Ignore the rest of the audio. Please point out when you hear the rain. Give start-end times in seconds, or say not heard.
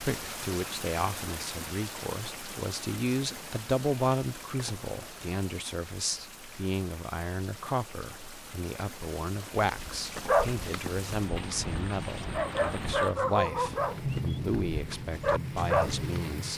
0.0-16.5.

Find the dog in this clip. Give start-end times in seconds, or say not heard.
9.6-16.1.